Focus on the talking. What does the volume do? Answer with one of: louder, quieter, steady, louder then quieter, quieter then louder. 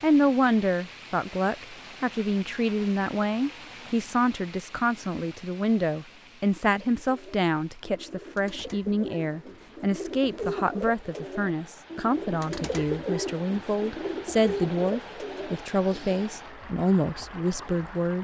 steady.